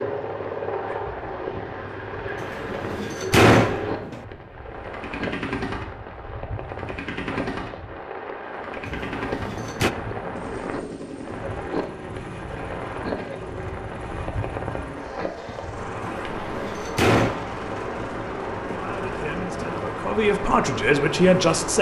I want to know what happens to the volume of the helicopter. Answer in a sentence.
The loudness of the helicopter goes down.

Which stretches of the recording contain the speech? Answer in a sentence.
The speech can be heard from 18.8 to 21.7 s.